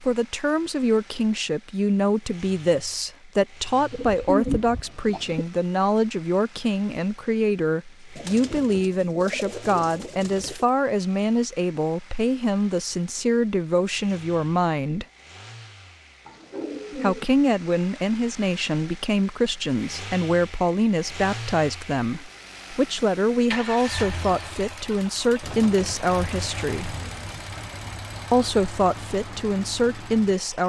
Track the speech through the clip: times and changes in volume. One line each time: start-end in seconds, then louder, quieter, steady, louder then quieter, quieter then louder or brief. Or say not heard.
0.0-15.1 steady
16.9-26.9 steady
28.3-30.6 brief.